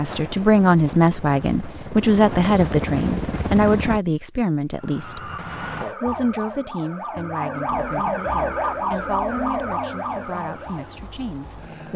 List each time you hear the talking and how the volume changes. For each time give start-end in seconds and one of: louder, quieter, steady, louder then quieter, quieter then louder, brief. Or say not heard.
0.0-11.9 quieter.